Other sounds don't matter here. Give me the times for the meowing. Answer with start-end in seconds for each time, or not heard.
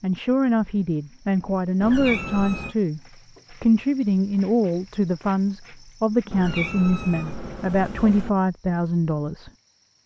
1.8-2.8, 6.3-8.3.